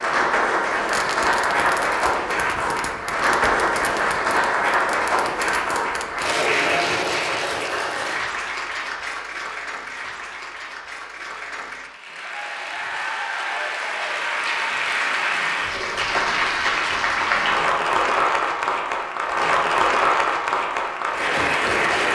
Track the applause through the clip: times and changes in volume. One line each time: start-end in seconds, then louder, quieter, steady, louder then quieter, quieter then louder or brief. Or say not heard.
0.0-22.1 quieter then louder.